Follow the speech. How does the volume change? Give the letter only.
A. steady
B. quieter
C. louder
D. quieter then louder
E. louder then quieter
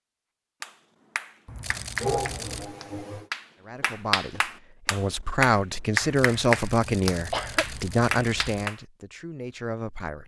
E.